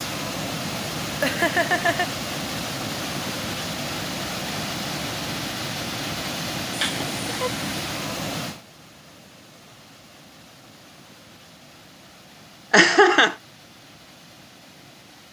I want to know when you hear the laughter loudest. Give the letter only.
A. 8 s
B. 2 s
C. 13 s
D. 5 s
C.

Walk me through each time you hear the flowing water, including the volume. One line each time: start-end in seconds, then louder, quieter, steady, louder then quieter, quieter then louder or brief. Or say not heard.
0.0-15.2 quieter.